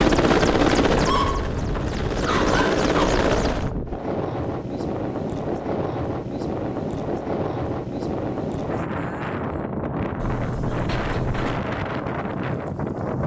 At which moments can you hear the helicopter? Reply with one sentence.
The helicopter can be heard from 0.0 to 3.7 s.